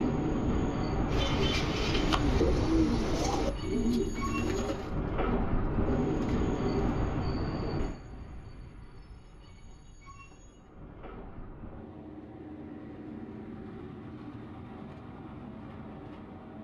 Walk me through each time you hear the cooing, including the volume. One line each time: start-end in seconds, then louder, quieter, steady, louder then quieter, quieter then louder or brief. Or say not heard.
1.1-6.9 quieter.